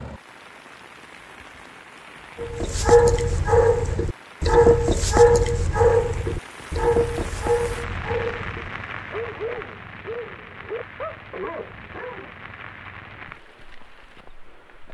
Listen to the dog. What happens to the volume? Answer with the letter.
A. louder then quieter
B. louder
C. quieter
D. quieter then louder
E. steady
C.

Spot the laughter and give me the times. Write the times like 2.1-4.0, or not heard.
not heard.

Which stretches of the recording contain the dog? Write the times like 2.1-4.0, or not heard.
2.4-12.3.